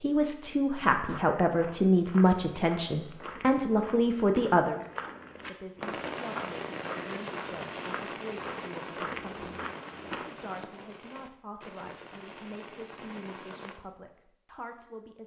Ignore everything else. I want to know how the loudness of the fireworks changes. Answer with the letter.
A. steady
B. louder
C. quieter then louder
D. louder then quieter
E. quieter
E.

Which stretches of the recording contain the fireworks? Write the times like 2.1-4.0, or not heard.
5.8-13.8.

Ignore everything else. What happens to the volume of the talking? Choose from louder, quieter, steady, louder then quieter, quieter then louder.
quieter.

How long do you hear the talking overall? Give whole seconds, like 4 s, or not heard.
15 s.